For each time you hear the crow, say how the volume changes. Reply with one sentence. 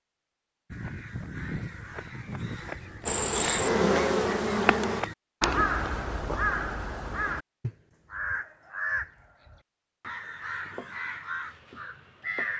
The crow can be heard from 0.7 to 12.5 s, getting louder then quieter.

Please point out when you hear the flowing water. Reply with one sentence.
The flowing water can't be heard in this clip.